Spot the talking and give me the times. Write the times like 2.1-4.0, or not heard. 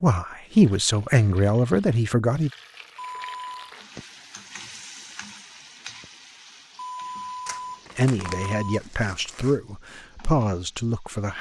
0.0-2.5, 8.0-11.3.